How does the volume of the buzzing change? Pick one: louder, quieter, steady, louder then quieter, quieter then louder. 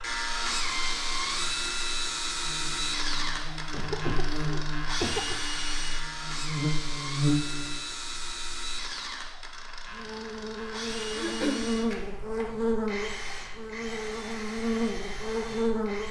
louder.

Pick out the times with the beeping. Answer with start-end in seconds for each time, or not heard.
not heard.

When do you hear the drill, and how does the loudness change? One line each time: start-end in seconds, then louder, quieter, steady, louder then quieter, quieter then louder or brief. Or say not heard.
0.0-16.0 quieter.